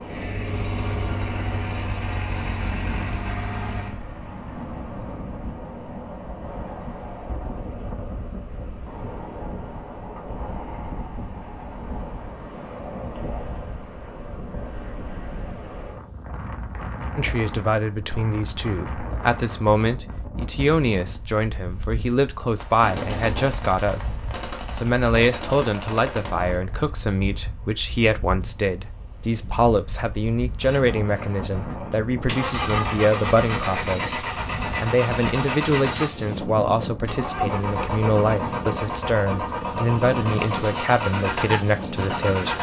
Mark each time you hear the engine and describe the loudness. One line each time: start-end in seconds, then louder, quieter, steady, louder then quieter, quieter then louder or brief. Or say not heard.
0.0-4.0 steady
30.6-42.5 steady.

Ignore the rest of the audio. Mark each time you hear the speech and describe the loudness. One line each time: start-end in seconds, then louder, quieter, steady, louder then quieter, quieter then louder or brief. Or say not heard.
17.1-42.5 steady.